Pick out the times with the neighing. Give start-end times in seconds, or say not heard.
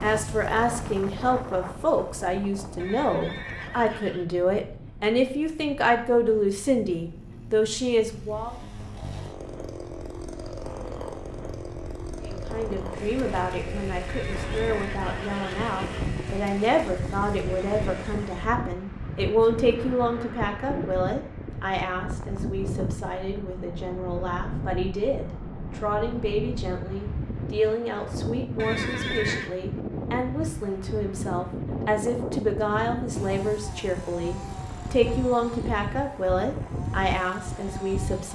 2.8-4.2, 14.1-16.1, 28.6-29.6.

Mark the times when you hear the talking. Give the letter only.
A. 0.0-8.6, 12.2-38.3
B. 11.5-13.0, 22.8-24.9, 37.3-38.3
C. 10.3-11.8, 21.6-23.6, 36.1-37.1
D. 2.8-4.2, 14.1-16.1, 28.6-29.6
A.